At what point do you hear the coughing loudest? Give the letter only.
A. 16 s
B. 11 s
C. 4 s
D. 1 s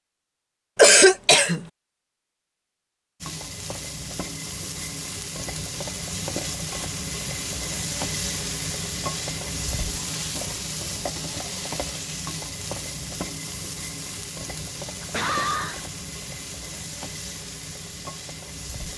D.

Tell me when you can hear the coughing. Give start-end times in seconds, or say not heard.
0.8-1.6, 15.0-15.8.